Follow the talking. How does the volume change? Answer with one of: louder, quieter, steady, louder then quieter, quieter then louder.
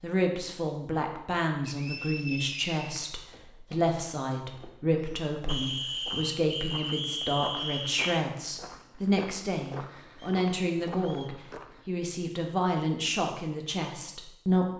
steady.